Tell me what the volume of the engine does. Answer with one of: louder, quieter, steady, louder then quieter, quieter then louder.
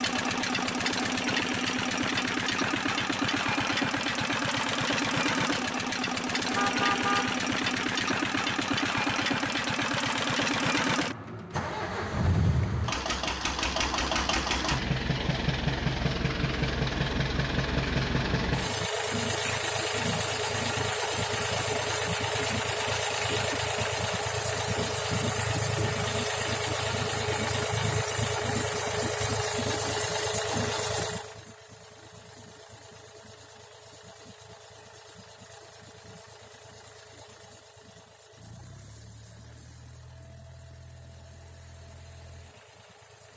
quieter.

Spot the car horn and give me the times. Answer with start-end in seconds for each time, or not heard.
6.5-7.4.